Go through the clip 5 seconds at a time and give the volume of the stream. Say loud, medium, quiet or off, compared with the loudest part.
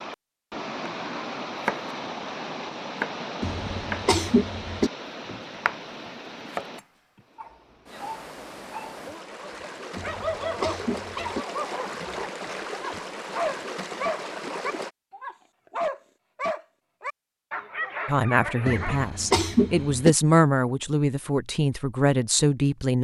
loud, medium, loud, off, off.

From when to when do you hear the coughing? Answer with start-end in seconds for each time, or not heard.
3.4-4.9, 9.9-11.4, 18.6-20.1.